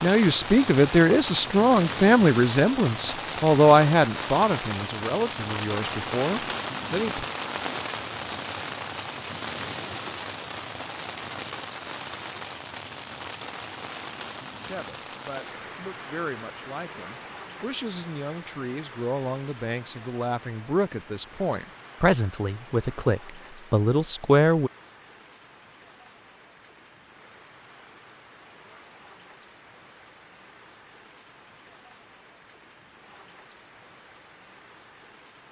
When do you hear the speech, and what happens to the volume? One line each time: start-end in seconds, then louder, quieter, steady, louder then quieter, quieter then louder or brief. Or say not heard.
0.0-7.2 quieter
14.6-24.7 louder.